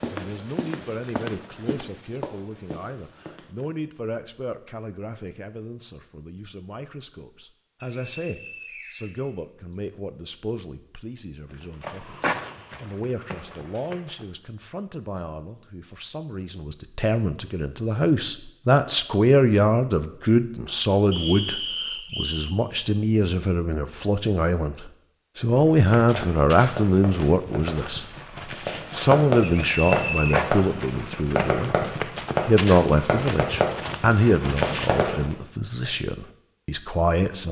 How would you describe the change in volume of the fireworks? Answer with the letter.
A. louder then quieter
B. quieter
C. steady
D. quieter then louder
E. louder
E.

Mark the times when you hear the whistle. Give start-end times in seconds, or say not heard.
7.8-9.8, 21.1-22.4, 29.4-30.4.